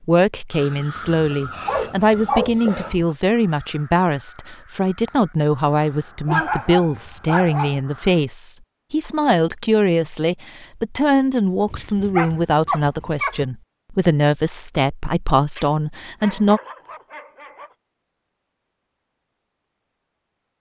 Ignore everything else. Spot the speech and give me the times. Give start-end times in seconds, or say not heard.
0.1-16.6.